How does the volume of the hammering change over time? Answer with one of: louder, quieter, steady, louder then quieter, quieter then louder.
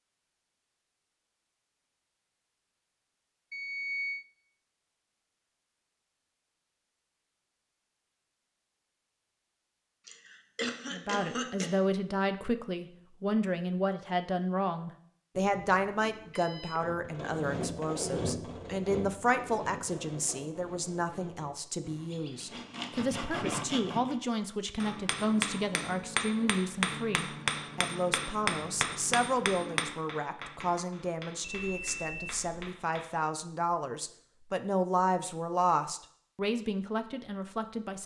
quieter.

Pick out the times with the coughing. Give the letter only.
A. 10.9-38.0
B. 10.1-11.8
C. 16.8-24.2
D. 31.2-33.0
B.